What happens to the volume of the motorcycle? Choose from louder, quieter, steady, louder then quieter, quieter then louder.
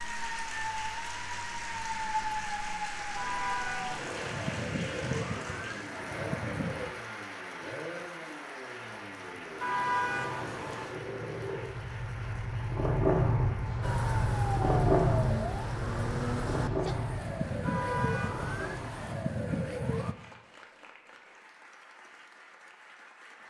louder then quieter.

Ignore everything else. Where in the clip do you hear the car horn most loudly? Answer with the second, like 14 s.
10 s.